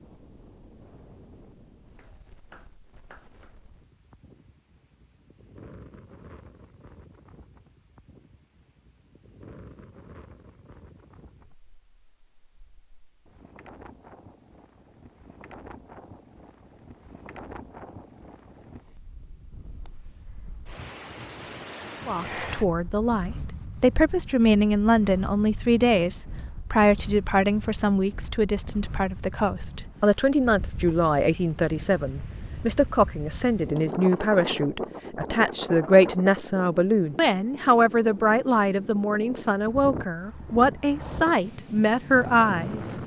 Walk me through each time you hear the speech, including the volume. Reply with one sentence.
The speech can be heard from 22.1 to 43.0 s, at a steady volume.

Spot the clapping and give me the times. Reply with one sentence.
The clapping can be heard from 1.9 to 3.5 s.